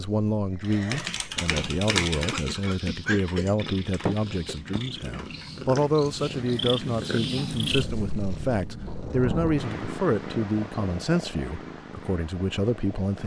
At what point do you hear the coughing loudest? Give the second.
3 s.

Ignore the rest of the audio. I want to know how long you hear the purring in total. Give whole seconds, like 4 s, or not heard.
13 s.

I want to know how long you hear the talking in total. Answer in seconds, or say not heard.
13 s.